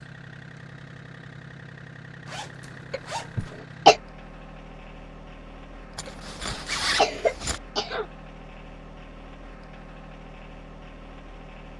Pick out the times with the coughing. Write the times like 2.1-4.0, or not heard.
2.9-4.0, 6.0-8.1.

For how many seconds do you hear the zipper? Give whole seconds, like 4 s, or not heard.
3 s.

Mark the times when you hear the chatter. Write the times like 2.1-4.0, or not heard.
not heard.